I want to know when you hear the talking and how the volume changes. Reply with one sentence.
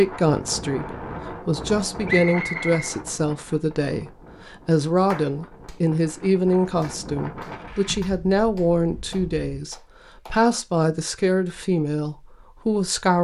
You can hear the talking from 0.0 to 13.1 s, at a steady volume.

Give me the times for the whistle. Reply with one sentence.
The whistle can be heard from 2.0 to 2.8 s.